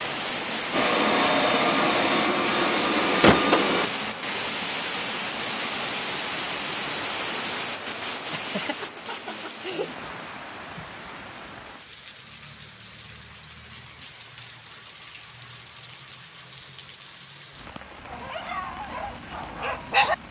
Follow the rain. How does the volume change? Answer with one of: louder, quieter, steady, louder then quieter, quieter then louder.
quieter.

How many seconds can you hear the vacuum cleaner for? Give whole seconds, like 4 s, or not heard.
4 s.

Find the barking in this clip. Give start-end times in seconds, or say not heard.
18.1-20.1.